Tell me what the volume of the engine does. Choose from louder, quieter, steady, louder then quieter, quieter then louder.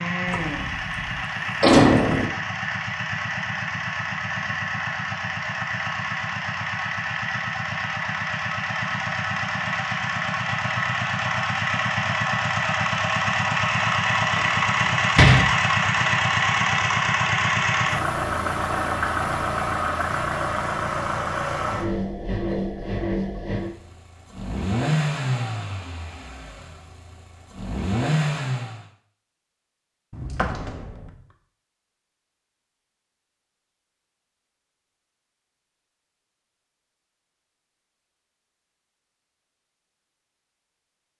louder then quieter.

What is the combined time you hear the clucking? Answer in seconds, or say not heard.
not heard.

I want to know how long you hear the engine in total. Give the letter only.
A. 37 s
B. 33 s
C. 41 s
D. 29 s
D.